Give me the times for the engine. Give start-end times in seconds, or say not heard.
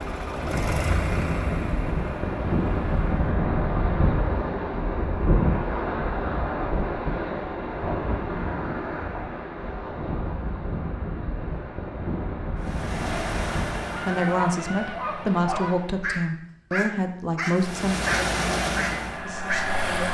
0.0-3.2, 12.6-16.1, 17.6-20.0.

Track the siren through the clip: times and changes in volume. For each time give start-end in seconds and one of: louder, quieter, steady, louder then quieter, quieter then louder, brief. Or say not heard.
not heard.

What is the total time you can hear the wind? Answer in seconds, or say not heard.
14 s.